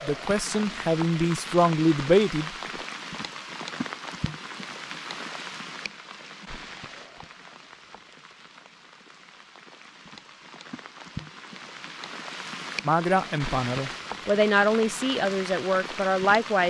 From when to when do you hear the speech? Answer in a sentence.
You can hear the speech from 0.0 to 2.5 s and from 12.8 to 16.6 s.